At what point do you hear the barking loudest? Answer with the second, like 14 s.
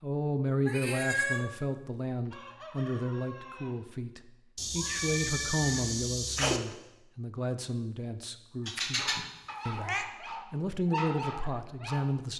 11 s.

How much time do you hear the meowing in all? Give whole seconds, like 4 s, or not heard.
4 s.